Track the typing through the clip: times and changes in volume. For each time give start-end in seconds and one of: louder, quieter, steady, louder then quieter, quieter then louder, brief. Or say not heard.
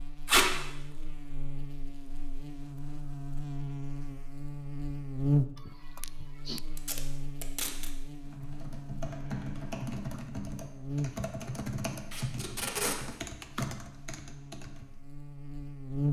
8.2-14.8 steady.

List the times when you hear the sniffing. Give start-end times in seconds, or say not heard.
5.5-6.7.